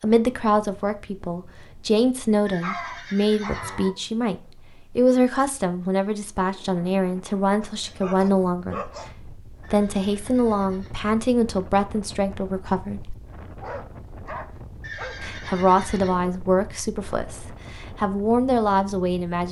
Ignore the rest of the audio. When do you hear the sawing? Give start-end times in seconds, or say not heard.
not heard.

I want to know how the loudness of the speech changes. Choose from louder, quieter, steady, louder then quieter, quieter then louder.
steady.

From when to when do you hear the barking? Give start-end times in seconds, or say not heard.
2.6-3.9, 7.6-9.1, 13.6-15.2.